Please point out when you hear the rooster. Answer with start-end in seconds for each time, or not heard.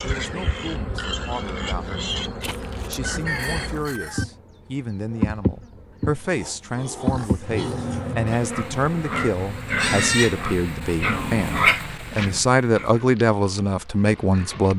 2.4-4.2.